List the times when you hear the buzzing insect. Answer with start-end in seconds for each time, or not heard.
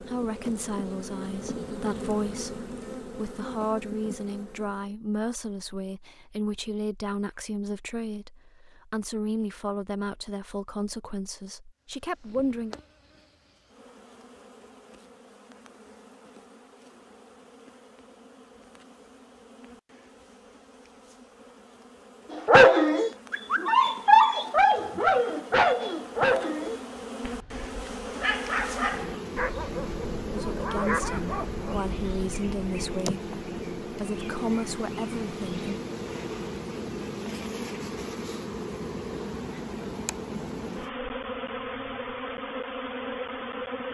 0.0-4.9, 11.9-43.9.